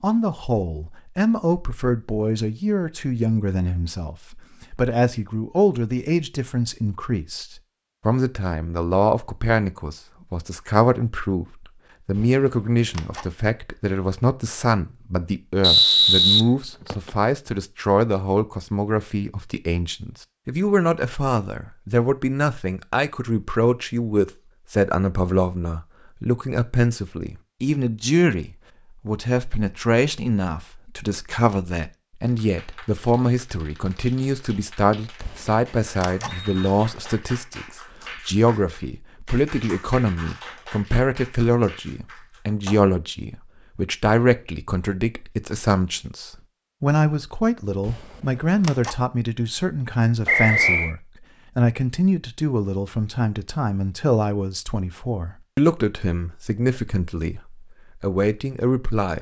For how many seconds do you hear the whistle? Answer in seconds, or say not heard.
3 s.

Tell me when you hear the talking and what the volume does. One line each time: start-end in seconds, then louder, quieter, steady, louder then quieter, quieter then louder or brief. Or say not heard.
0.0-59.1 steady.